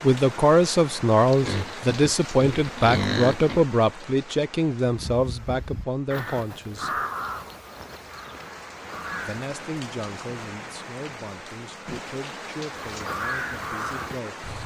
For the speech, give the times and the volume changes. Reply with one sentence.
You can hear the speech from 0.0 to 6.9 s, getting quieter; and from 9.2 to 14.4 s, getting quieter.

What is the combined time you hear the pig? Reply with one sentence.
You can hear the pig for 2 seconds altogether.